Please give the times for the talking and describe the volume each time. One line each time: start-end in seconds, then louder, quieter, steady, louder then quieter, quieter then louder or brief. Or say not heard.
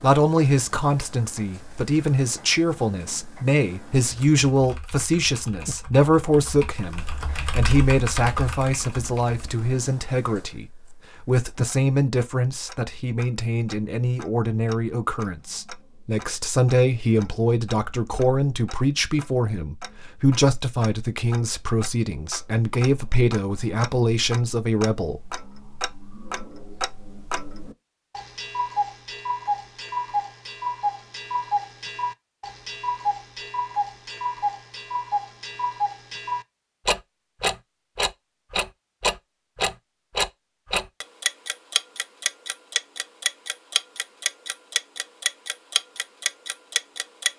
0.0-25.3 steady.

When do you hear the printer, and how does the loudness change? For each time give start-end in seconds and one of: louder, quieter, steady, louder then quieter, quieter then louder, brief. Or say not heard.
not heard.